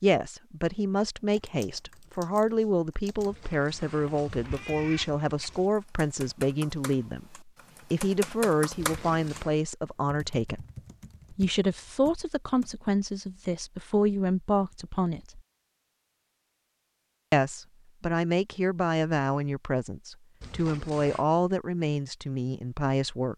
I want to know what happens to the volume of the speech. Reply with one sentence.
The volume of the speech stays about the same.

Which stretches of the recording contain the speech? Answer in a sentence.
The speech can be heard from 0.0 to 10.7 s, from 11.3 to 15.4 s and from 17.3 to 23.3 s.